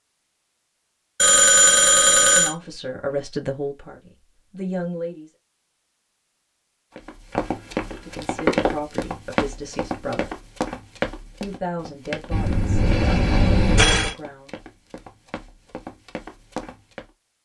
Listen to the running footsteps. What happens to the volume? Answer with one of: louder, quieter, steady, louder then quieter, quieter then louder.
quieter then louder.